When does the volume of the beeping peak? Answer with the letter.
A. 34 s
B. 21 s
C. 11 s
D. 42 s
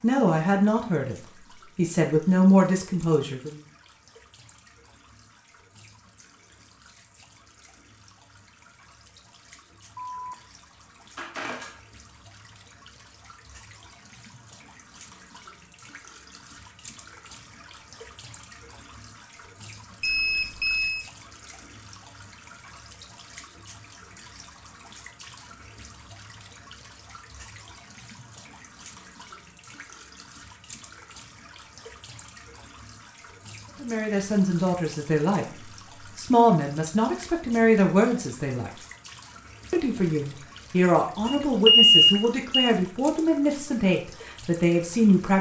D.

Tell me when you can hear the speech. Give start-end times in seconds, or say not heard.
0.0-1.1, 1.8-3.6, 33.8-38.7, 39.7-45.3.